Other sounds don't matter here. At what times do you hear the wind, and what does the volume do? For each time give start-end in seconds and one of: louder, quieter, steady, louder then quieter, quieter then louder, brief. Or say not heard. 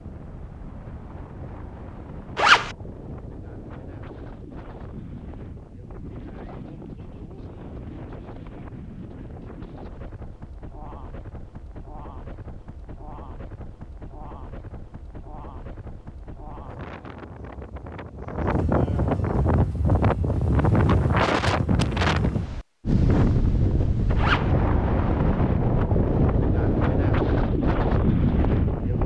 0.0-29.0 louder.